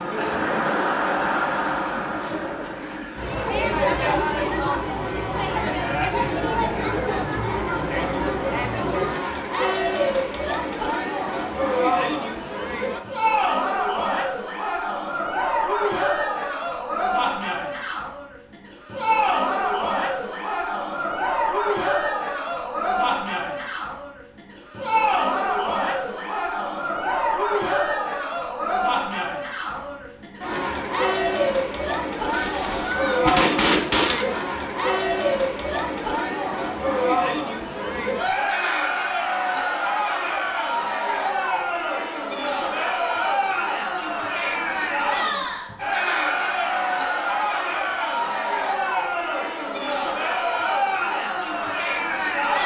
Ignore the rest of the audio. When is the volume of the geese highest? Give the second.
34 s.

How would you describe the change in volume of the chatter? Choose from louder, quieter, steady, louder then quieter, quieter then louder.
steady.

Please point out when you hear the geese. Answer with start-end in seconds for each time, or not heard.
32.3-34.2.